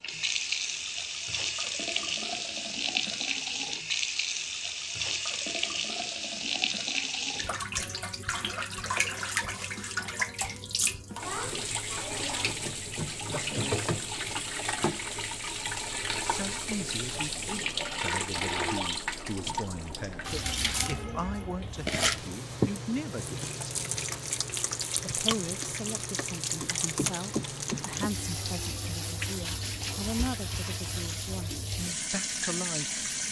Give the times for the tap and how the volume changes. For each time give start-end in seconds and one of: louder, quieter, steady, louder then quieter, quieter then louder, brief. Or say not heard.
0.0-33.2 steady.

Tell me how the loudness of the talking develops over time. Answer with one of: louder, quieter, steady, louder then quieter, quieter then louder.
steady.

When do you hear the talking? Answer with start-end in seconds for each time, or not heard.
16.2-23.6, 25.0-33.0.